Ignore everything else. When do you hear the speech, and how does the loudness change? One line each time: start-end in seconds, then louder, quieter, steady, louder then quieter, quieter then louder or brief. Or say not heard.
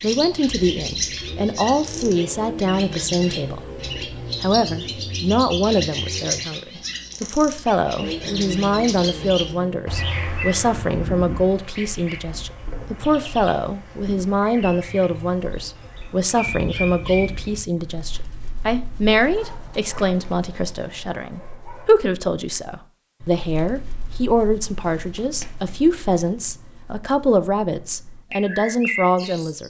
0.0-29.6 steady.